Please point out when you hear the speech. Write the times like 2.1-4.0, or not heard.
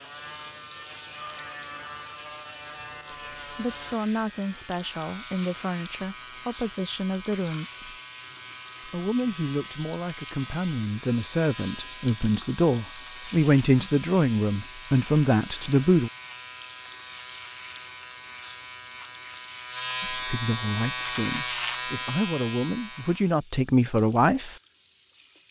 3.5-8.0, 8.8-16.1, 20.0-24.6.